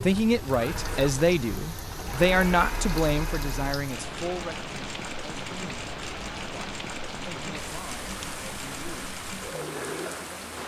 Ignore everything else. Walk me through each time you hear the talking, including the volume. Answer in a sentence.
You can hear the talking from 0.0 to 10.6 s, getting quieter.